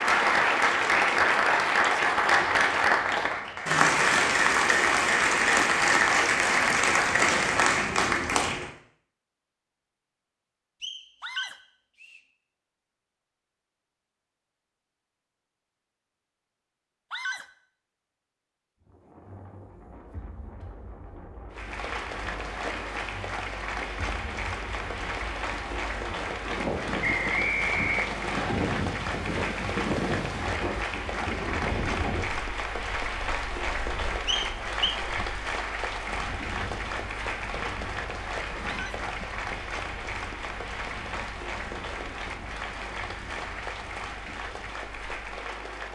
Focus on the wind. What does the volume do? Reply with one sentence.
The volume of the wind goes up, then down.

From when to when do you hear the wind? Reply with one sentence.
The wind can be heard from 18.9 to 45.9 s.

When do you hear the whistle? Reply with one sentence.
The whistle can be heard from 10.8 to 12.2 s, from 27.0 to 28.6 s and from 34.2 to 35.0 s.